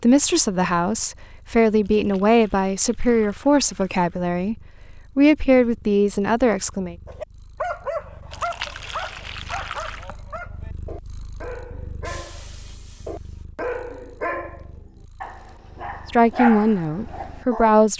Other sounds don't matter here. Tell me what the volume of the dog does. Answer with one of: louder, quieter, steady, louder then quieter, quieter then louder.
quieter then louder.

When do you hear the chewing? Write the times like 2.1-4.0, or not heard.
not heard.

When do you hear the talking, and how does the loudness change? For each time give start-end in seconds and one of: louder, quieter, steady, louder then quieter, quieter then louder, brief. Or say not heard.
0.0-7.0 steady
16.1-17.9 brief.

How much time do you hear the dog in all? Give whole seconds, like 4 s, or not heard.
11 s.